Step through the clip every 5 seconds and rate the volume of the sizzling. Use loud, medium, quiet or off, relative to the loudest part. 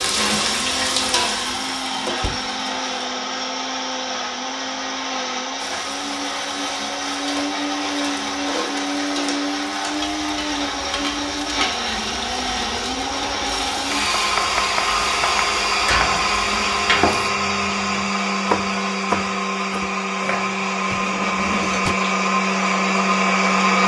loud, medium, medium, loud, off.